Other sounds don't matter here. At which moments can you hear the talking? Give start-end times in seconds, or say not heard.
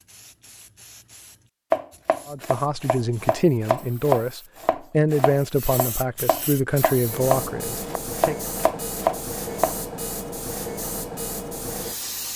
2.2-8.3.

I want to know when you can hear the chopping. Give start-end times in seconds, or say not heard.
1.7-9.8.